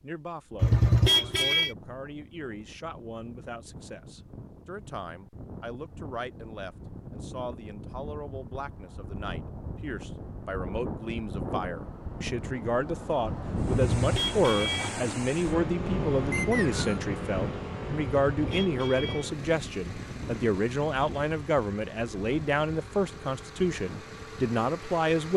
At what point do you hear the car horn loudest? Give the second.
1 s.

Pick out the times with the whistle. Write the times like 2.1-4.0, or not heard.
16.3-17.0.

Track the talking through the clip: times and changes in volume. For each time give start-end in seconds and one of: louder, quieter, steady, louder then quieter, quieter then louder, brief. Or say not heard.
0.0-25.3 louder.